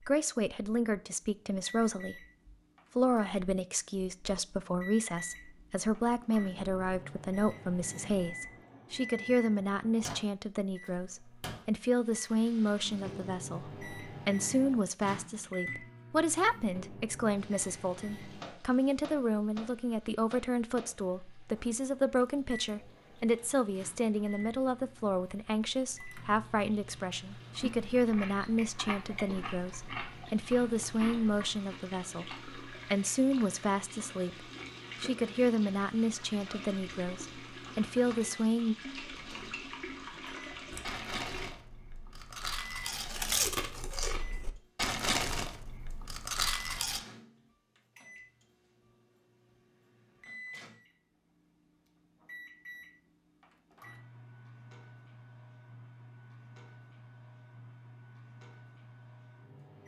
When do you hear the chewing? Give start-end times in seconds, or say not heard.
27.6-31.5, 40.7-47.0.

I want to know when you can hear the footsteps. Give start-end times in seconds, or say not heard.
not heard.